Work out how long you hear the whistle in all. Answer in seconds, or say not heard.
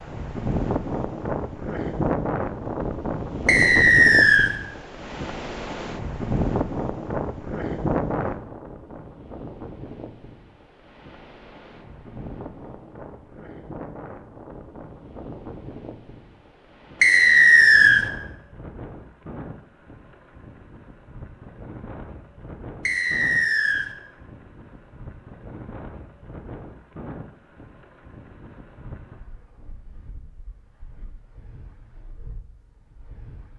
3 s.